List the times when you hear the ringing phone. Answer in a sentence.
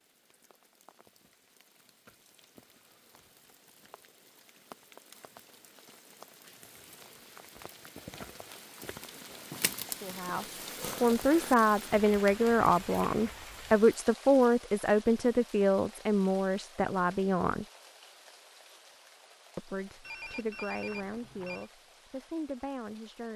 You can hear the ringing phone from 20.0 to 21.6 s.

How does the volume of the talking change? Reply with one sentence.
The volume of the talking goes down.